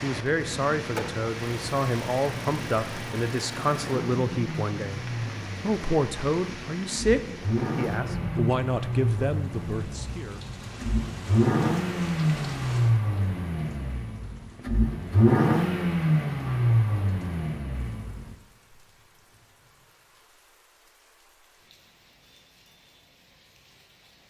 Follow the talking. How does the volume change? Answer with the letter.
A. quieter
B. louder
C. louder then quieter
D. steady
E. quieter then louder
D.